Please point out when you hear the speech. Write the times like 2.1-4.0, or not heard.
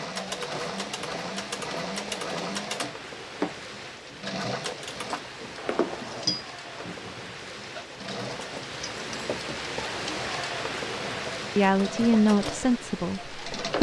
11.1-13.7.